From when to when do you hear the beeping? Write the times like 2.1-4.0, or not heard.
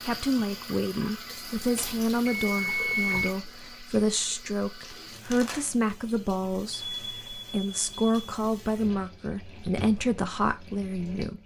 1.8-3.4, 6.7-8.2.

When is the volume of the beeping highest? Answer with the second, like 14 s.
3 s.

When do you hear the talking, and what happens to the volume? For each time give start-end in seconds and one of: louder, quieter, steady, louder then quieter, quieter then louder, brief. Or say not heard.
0.1-11.4 steady.